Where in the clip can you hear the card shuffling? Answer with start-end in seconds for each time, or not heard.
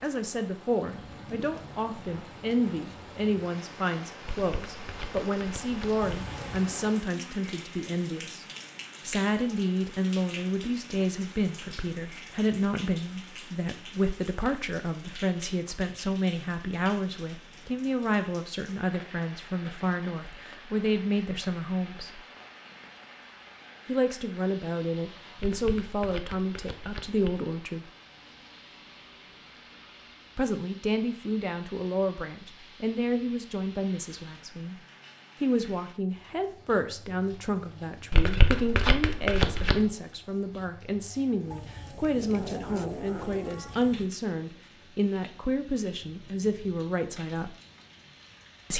4.2-6.0, 25.4-27.4, 38.1-39.9.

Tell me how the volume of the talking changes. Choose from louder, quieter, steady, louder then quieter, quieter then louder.
steady.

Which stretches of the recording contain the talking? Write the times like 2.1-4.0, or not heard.
0.0-8.4, 9.1-22.2, 23.9-27.9, 30.4-34.8, 35.4-47.5.